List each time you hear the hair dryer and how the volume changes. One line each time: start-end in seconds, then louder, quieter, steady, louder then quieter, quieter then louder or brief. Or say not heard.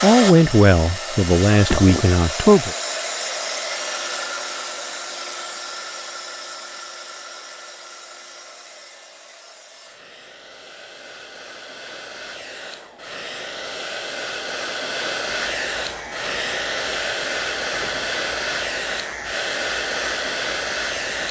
0.0-21.2 quieter then louder.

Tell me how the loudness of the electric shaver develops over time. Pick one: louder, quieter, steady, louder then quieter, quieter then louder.
steady.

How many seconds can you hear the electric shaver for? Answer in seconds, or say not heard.
6 s.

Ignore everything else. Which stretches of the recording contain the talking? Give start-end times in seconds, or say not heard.
0.0-2.8.